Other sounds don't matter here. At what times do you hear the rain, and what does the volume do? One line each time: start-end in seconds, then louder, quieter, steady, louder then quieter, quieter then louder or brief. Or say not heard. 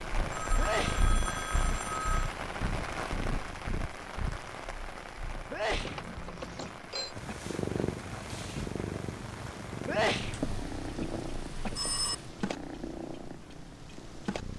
0.0-14.5 quieter.